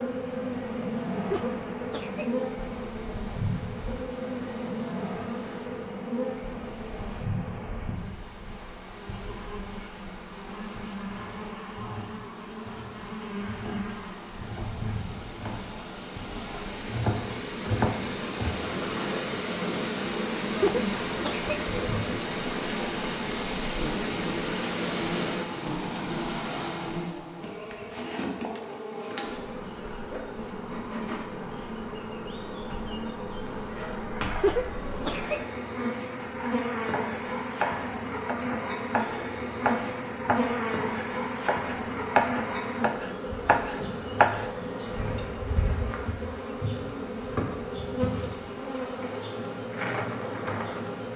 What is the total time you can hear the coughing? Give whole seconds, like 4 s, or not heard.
3 s.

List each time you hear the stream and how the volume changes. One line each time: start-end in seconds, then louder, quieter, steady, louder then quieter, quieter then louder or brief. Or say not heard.
0.0-27.2 louder.